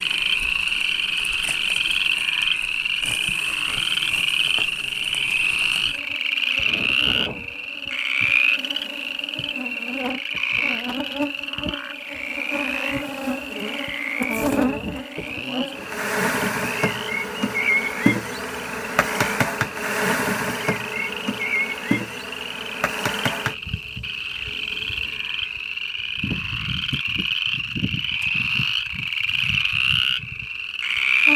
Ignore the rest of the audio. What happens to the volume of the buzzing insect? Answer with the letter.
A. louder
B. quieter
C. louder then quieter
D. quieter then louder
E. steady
C.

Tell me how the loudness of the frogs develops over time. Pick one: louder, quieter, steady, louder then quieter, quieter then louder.
quieter then louder.